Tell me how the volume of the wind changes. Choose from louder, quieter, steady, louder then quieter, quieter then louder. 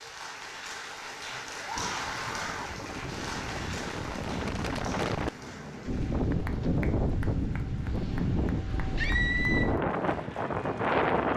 louder.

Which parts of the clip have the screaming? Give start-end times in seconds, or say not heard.
1.6-2.7, 8.9-9.7.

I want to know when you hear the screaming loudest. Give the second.
9 s.